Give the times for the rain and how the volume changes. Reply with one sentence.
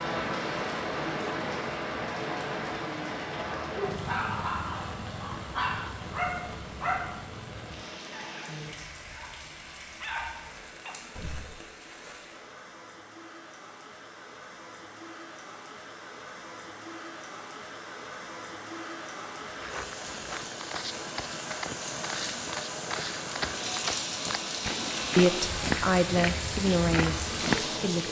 You can hear the rain from 0.0 to 28.0 s, getting quieter then louder.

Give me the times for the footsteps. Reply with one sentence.
The footsteps can be heard from 19.5 to 27.8 s.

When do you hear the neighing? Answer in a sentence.
You can't hear the neighing here.